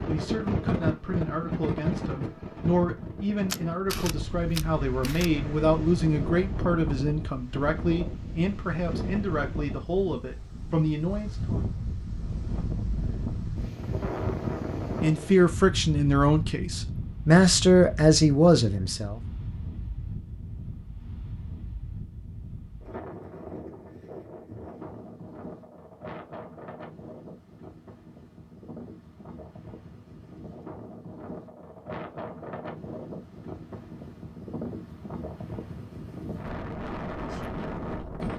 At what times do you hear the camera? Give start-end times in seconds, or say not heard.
3.5-5.3.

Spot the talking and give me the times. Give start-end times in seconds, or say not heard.
0.1-11.6, 15.0-19.2.